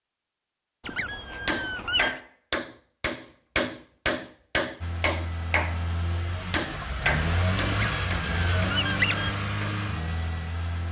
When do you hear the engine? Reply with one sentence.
The engine can be heard from 4.8 to 10.8 s.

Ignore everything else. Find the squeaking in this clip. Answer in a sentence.
The squeaking can be heard from 0.8 to 2.2 s and from 7.7 to 9.3 s.